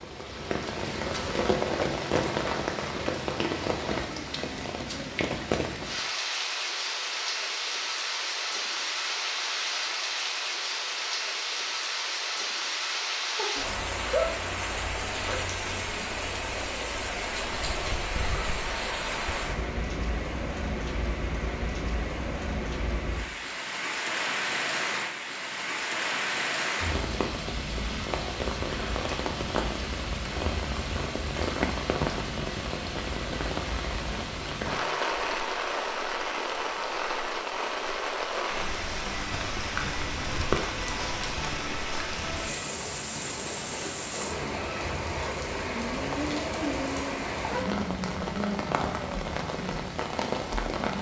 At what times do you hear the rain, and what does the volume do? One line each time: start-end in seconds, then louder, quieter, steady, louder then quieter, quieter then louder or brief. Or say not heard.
0.0-50.9 steady.